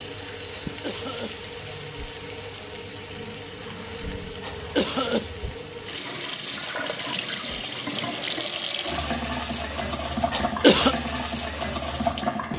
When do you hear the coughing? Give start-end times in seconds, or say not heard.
0.7-1.5, 4.4-5.5, 10.3-10.9.